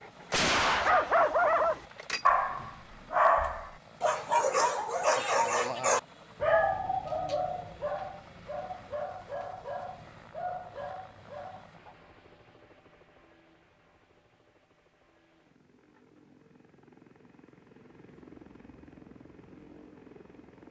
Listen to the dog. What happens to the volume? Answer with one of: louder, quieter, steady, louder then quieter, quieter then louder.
quieter.